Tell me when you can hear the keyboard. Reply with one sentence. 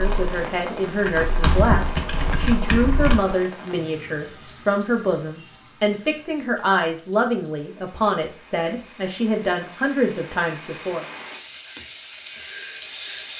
The keyboard can be heard from 0.0 to 3.4 s.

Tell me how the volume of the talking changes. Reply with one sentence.
The volume of the talking stays about the same.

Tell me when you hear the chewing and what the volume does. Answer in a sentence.
You can't hear the chewing here.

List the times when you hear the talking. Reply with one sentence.
The talking can be heard from 0.0 to 11.1 s.